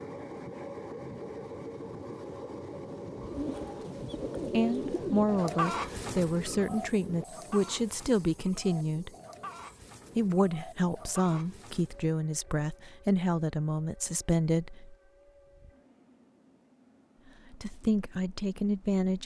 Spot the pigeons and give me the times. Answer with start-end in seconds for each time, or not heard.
3.1-12.1.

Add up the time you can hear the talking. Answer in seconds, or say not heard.
11 s.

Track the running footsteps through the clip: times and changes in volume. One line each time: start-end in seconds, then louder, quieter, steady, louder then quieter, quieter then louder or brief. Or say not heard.
not heard.